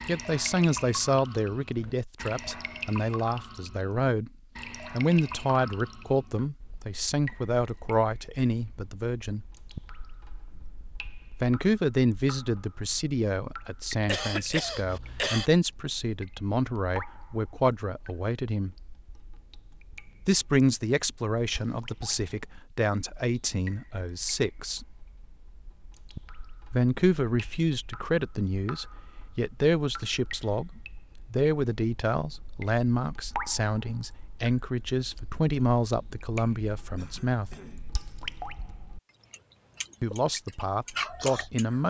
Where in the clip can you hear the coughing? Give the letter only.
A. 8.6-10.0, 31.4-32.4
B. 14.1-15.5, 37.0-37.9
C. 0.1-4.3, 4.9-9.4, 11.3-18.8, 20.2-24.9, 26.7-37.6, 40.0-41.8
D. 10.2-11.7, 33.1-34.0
B.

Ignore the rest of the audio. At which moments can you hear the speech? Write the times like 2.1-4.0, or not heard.
0.1-4.3, 4.9-9.4, 11.3-18.8, 20.2-24.9, 26.7-37.6, 40.0-41.8.